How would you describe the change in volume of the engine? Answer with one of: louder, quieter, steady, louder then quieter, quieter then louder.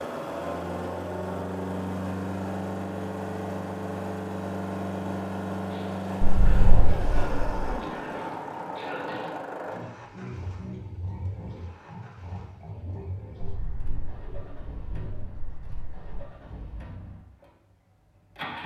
quieter.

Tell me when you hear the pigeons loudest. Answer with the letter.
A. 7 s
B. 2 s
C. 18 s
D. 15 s
A.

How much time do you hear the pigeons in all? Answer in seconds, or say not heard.
4 s.